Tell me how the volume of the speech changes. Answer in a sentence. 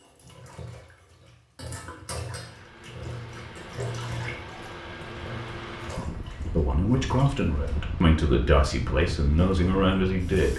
The volume of the speech stays about the same.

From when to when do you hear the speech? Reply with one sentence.
You can hear the speech from 6.5 to 10.5 s.